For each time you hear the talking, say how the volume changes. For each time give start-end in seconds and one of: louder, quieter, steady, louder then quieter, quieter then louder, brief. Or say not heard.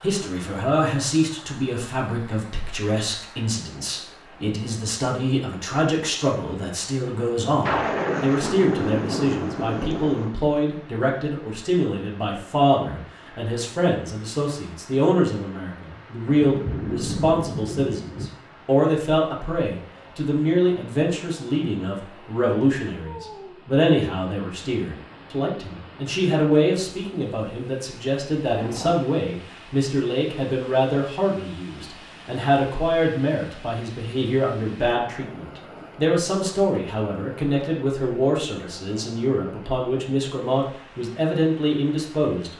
0.0-42.5 steady.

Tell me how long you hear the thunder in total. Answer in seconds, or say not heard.
5 s.